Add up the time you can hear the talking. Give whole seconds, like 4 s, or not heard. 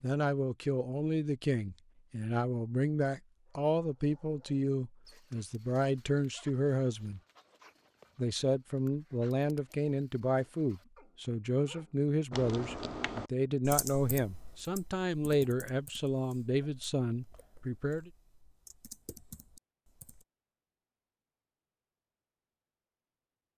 17 s.